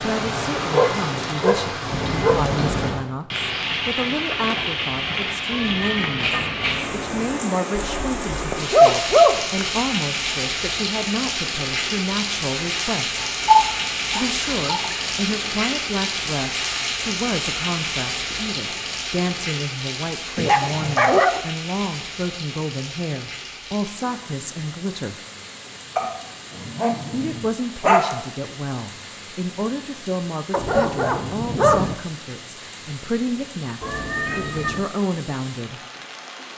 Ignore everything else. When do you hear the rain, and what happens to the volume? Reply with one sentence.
The rain can be heard from 0.0 to 36.5 s, getting quieter.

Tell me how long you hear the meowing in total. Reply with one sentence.
The meowing can be heard for 3 seconds in total.